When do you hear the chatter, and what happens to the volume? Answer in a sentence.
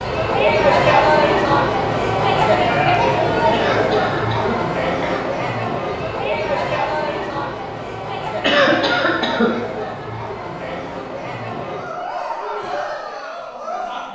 The chatter can be heard from 0.0 to 14.0 s, getting quieter.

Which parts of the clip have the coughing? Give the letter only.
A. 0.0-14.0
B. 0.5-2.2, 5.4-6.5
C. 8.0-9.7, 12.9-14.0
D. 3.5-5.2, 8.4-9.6
D.